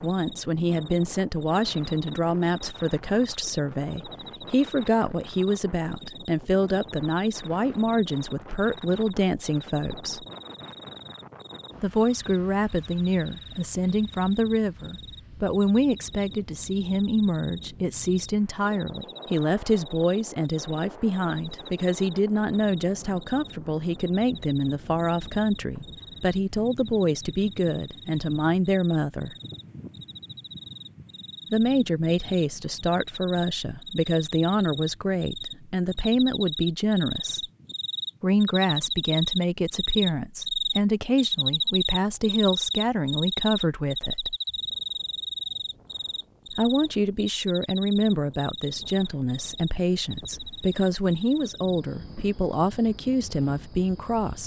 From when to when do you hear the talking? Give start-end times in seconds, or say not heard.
0.0-10.2, 11.8-29.4, 31.5-37.4, 38.2-44.4, 46.5-54.4.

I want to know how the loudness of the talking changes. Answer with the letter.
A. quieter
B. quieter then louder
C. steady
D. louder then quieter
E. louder
C.